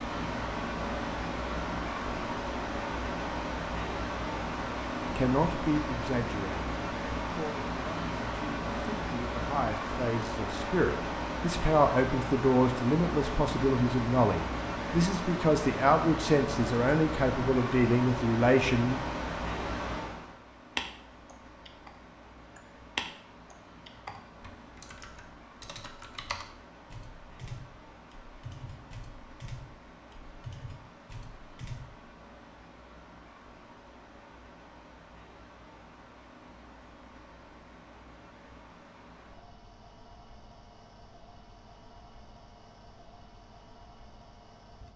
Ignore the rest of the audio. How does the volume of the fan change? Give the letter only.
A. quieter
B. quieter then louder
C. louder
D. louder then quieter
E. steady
A.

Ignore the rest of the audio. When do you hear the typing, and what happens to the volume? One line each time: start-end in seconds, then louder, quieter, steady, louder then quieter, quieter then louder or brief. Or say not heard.
20.8-21.9 brief
22.6-32.0 quieter.